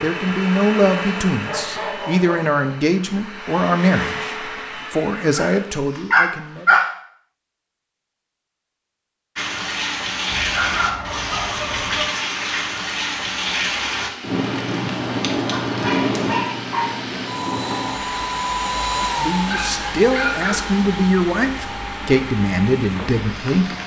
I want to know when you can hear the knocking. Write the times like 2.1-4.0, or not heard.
not heard.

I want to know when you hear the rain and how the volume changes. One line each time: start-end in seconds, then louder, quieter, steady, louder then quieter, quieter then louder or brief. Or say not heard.
9.3-23.8 quieter.